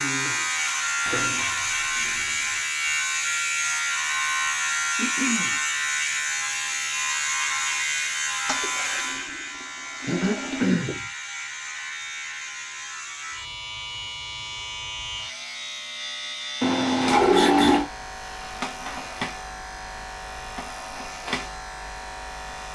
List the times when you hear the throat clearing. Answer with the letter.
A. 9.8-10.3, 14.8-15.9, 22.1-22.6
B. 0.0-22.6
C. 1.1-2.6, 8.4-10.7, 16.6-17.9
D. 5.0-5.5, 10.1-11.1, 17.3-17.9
D.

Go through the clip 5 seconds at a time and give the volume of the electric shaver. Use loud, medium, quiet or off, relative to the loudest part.
loud, loud, medium, medium, medium.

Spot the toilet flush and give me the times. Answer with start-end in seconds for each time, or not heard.
1.1-2.6, 8.4-10.7, 16.6-17.9.